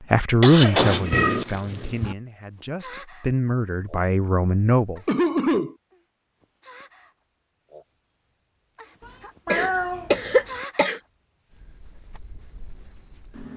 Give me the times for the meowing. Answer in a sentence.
The meowing can be heard from 0.7 to 2.1 s and from 9.0 to 10.6 s.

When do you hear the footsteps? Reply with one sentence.
The footsteps can't be heard in this clip.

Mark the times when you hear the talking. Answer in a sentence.
The talking can be heard from 0.1 to 5.0 s.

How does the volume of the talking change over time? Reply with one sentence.
The loudness of the talking goes down, then up.